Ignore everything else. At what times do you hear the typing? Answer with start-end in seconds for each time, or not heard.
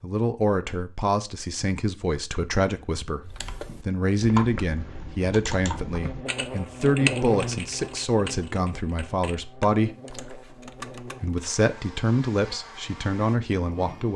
3.2-11.6.